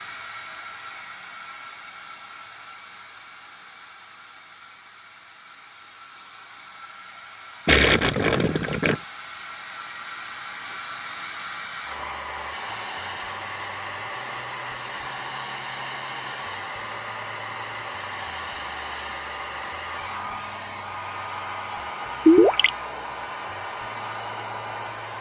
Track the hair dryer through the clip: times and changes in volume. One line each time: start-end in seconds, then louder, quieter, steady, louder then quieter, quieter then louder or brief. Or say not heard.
0.0-25.1 louder.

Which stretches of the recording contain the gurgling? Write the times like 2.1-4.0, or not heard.
7.7-8.9, 22.2-22.7.